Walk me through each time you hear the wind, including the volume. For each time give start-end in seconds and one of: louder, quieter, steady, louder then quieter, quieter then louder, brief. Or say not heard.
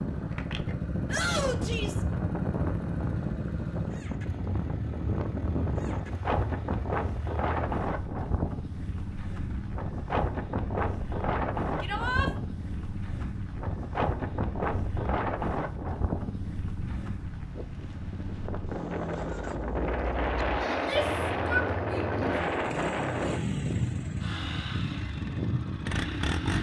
0.0-26.5 steady.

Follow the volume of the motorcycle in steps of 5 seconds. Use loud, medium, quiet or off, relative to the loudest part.
loud, medium, medium, medium, loud, loud.